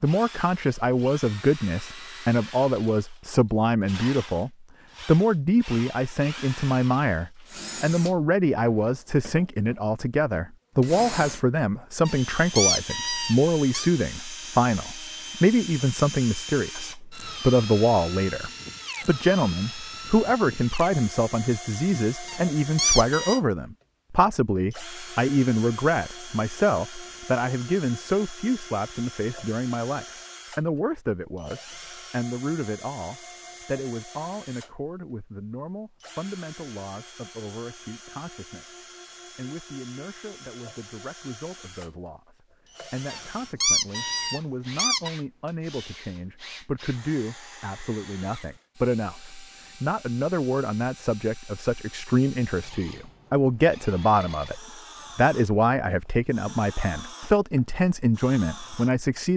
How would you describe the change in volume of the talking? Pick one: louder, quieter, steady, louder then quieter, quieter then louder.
quieter then louder.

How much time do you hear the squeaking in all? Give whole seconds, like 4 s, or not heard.
5 s.